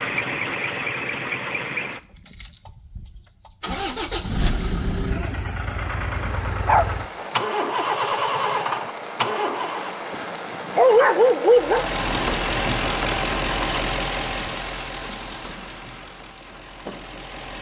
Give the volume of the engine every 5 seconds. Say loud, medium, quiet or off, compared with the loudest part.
loud, loud, loud, quiet.